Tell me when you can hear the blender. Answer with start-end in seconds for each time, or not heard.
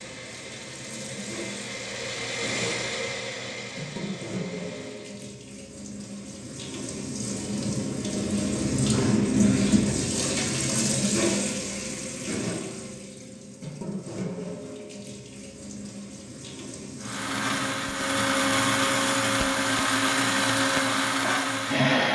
0.0-5.3, 17.0-22.1.